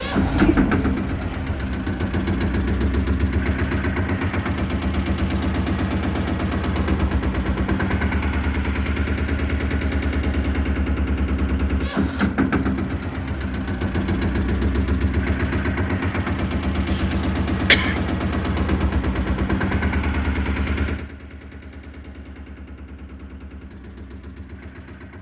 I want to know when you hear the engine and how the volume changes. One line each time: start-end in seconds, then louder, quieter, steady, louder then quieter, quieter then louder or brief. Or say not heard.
0.0-25.1 quieter.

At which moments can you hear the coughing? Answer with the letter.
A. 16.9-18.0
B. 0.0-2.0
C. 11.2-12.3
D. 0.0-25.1
A.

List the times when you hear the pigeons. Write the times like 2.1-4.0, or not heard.
0.0-2.0.